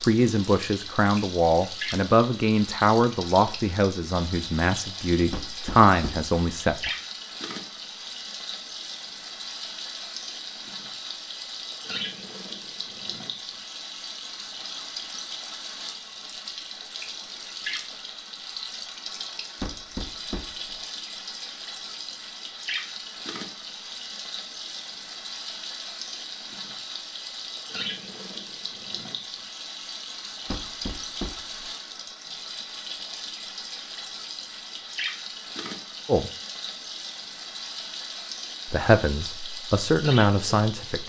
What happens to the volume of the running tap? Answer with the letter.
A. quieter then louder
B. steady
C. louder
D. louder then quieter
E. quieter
B.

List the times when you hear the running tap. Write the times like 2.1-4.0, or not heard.
0.0-41.0.